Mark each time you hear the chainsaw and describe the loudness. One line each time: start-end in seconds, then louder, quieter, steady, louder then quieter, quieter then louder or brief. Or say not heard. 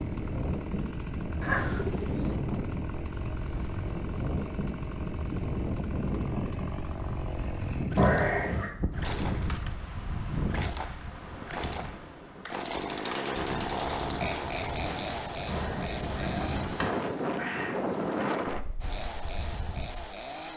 0.0-20.5 louder then quieter.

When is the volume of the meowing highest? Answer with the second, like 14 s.
8 s.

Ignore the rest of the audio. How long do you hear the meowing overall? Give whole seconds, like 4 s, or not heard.
3 s.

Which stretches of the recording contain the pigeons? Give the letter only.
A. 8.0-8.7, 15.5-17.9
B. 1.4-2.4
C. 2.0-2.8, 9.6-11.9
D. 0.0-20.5
B.